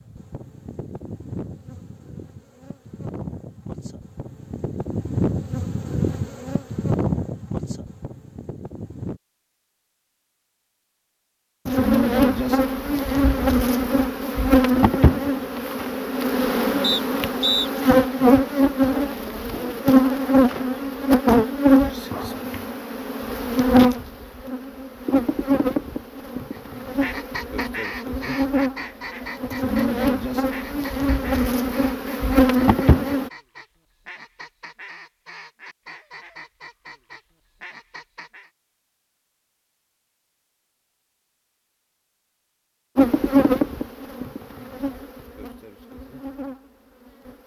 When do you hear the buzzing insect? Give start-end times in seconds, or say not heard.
0.0-9.2, 11.7-33.3, 43.0-47.4.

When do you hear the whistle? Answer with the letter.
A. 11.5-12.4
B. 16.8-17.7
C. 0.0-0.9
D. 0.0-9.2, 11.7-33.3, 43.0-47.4
B.